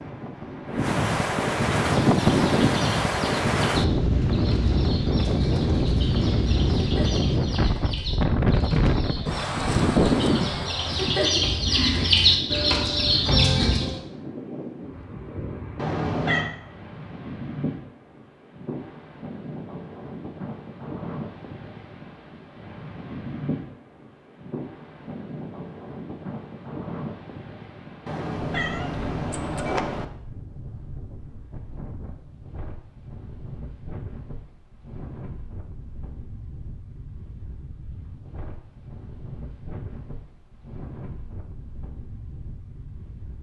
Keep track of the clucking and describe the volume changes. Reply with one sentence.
The volume of the clucking goes up.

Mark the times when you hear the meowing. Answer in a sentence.
You can hear the meowing from 15.8 to 16.5 s and from 28.1 to 30.1 s.